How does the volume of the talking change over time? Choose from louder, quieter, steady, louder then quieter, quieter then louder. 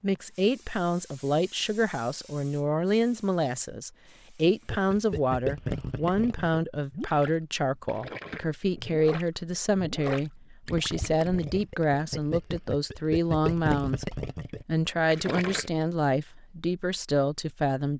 steady.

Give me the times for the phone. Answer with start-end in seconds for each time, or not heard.
not heard.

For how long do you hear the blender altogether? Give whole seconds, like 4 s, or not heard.
not heard.